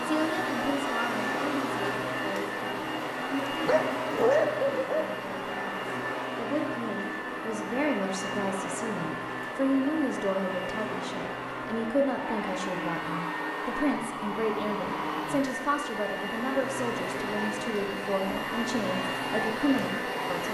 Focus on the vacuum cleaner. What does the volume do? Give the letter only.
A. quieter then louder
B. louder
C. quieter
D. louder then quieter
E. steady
E.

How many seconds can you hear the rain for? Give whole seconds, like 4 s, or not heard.
not heard.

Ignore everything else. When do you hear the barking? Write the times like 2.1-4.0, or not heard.
3.5-5.2.